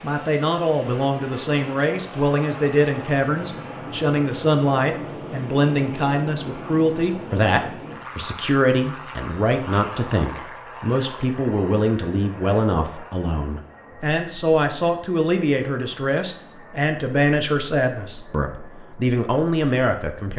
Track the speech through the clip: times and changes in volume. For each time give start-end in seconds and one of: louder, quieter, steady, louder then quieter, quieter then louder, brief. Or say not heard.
0.0-20.3 steady.